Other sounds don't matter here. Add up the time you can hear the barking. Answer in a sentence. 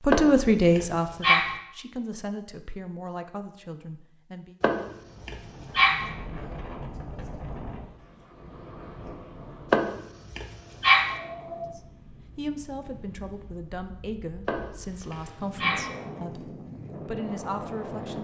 The barking can be heard for 6 seconds in total.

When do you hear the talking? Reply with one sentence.
The talking can be heard from 0.0 to 4.5 s and from 11.6 to 18.1 s.